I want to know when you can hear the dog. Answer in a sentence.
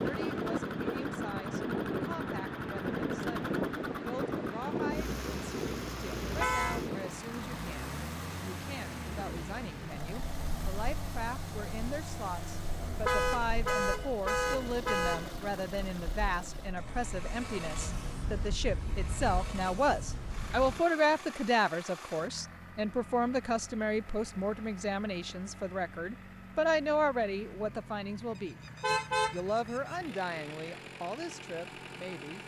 You can't hear the dog here.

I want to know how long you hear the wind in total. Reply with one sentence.
You can hear the wind for 21 seconds altogether.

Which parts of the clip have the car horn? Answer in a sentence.
The car horn can be heard from 6.2 to 6.8 s, from 12.8 to 15.4 s and from 28.6 to 29.9 s.